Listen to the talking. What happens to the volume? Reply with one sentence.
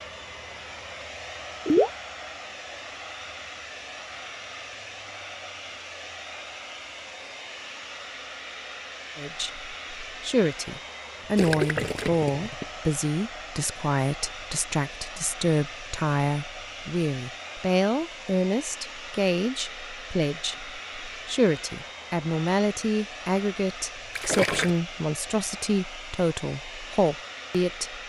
The volume of the talking stays about the same.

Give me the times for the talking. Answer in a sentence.
You can hear the talking from 9.2 to 28.0 s.